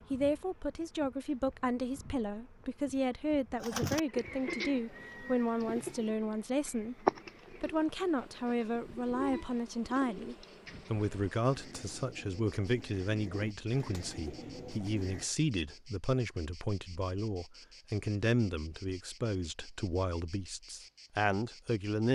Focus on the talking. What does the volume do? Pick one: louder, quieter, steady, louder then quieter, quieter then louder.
steady.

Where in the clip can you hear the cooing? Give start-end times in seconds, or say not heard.
3.6-15.3.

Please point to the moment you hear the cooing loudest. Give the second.
7 s.